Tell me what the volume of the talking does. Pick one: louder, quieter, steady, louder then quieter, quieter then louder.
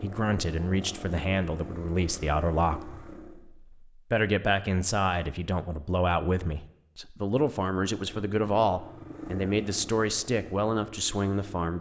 steady.